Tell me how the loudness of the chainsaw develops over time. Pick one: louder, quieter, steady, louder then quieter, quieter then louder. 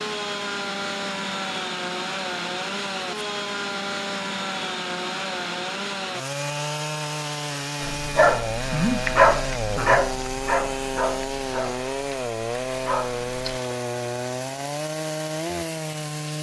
steady.